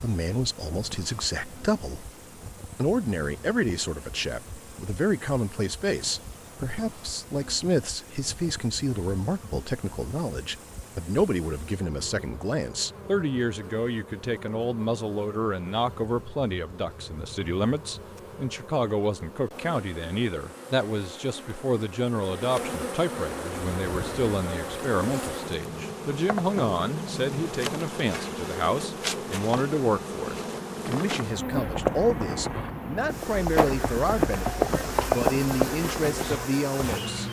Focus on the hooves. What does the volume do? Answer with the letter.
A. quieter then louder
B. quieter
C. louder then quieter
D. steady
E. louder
C.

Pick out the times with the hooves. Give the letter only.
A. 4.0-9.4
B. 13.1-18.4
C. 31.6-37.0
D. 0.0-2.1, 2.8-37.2
C.